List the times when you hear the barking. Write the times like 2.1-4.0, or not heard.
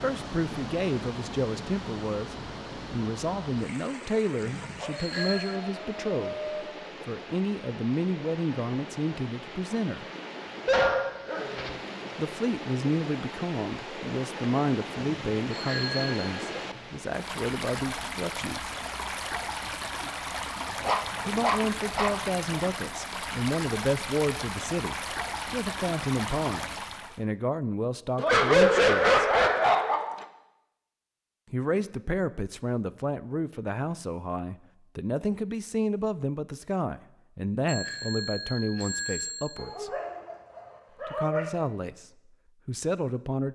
4.8-6.6, 10.7-11.8, 20.8-22.1, 28.1-30.2, 39.5-41.5.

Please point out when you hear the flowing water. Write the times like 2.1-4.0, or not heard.
0.0-27.2.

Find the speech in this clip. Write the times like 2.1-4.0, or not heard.
0.0-10.1, 12.2-18.8, 21.2-29.3, 31.5-39.9, 41.0-42.0, 42.6-43.5.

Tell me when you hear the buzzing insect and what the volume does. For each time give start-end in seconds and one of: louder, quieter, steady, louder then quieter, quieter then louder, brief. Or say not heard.
not heard.